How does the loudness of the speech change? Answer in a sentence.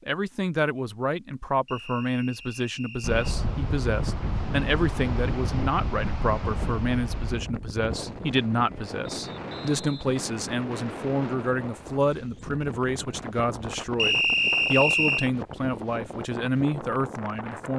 The loudness of the speech stays about the same.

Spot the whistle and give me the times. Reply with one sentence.
The whistle can be heard from 1.6 to 3.3 s, from 9.1 to 10.2 s and from 13.9 to 15.3 s.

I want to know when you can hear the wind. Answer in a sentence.
You can hear the wind from 3.0 to 17.7 s.